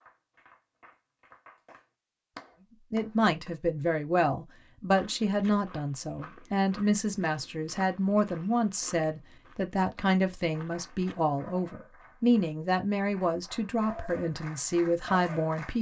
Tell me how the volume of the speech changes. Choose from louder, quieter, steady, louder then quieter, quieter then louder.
steady.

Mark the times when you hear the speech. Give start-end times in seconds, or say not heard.
2.9-15.7.